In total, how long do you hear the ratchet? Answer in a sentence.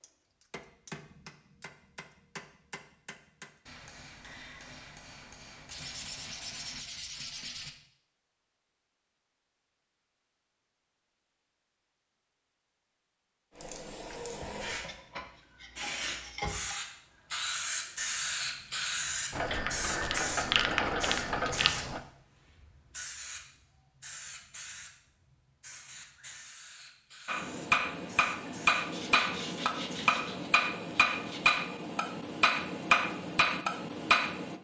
The ratchet can be heard for 3 seconds in total.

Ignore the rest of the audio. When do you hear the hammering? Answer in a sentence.
The hammering can be heard from 0.0 to 6.8 s and from 27.2 to 34.5 s.